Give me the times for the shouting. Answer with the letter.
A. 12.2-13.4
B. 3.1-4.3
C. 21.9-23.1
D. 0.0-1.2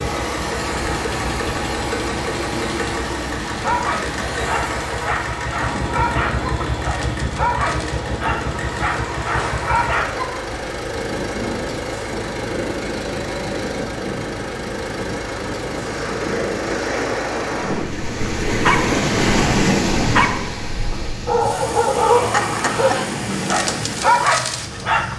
C.